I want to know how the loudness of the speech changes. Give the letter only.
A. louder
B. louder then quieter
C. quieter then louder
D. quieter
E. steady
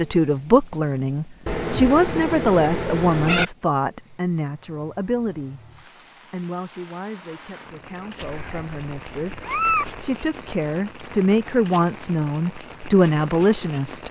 C.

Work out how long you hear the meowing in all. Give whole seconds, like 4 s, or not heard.
4 s.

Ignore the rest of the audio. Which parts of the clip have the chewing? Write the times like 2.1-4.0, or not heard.
not heard.